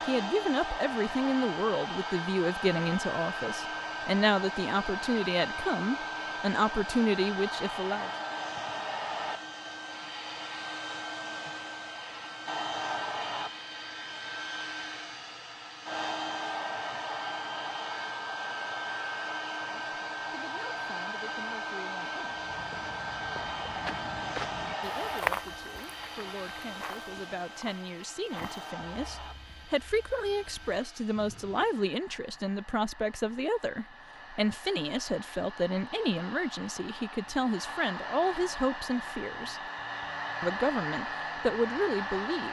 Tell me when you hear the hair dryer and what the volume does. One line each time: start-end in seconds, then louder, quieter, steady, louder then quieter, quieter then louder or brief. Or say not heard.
0.0-42.4 quieter then louder.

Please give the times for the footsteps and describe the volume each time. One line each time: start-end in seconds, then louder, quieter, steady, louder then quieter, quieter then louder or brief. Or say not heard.
22.2-31.7 louder then quieter.